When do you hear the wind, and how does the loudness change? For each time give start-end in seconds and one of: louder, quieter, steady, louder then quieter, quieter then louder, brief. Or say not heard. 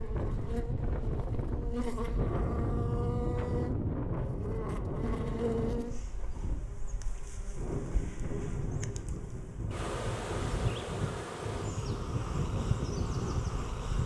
0.0-14.0 quieter then louder.